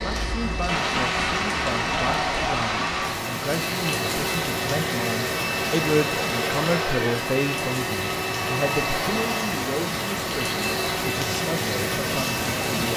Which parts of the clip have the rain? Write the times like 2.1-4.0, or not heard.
0.0-12.9.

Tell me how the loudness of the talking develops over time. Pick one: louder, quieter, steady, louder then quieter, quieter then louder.
louder then quieter.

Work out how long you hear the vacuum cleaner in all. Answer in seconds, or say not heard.
13 s.